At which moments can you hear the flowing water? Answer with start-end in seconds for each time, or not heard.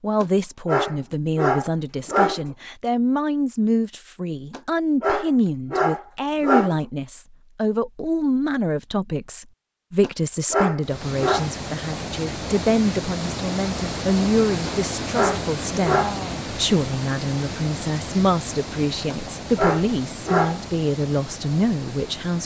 10.8-22.4.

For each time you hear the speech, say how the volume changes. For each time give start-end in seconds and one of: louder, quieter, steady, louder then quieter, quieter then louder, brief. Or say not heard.
0.0-22.4 steady.